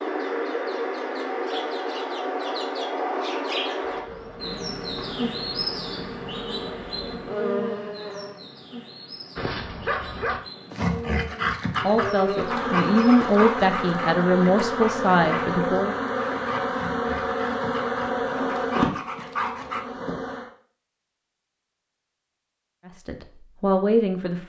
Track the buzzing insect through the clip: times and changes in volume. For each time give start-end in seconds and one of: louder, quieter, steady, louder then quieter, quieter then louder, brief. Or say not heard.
3.8-8.3 louder
11.9-20.5 steady.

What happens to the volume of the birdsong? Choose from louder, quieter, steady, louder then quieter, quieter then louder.
quieter.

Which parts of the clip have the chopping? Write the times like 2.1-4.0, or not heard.
not heard.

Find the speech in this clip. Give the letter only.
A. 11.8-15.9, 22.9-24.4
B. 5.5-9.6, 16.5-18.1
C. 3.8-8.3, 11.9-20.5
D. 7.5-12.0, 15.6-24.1
A.